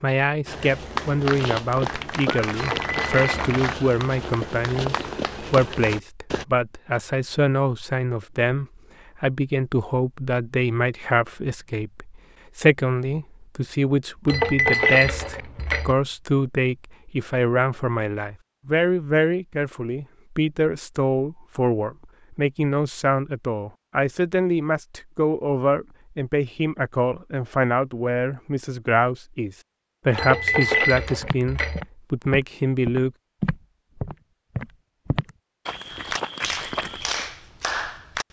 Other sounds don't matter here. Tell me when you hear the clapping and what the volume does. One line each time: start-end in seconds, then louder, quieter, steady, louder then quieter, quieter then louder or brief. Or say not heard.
0.8-6.0 quieter
35.9-38.2 brief.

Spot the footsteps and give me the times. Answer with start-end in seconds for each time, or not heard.
0.5-6.5, 31.2-37.2.